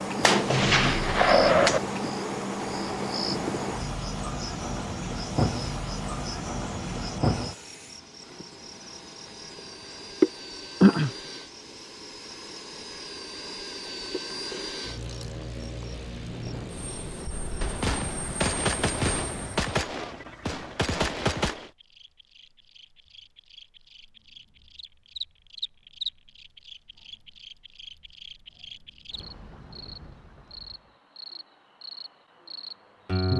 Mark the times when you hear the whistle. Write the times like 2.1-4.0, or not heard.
not heard.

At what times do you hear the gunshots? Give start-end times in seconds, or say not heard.
0.2-1.8, 17.6-21.7.